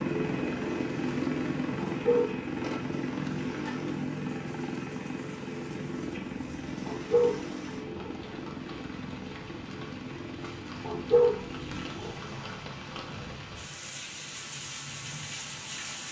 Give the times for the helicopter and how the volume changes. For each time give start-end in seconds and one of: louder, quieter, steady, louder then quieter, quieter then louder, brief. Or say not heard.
0.0-13.3 quieter.